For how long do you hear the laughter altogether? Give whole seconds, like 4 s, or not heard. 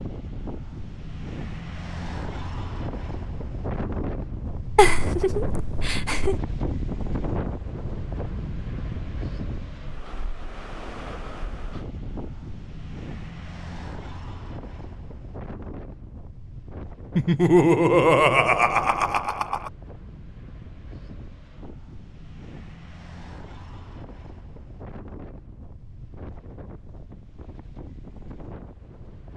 4 s.